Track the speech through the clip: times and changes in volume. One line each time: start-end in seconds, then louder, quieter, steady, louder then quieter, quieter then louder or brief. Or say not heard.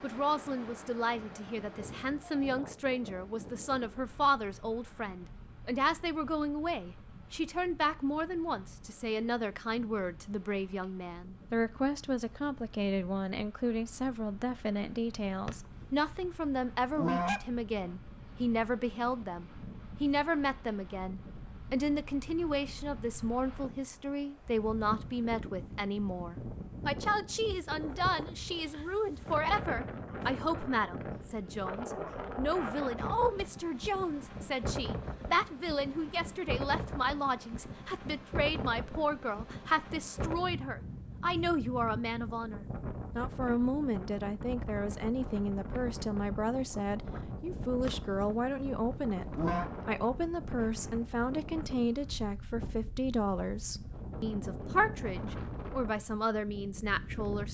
0.0-49.2 steady
49.9-57.4 steady.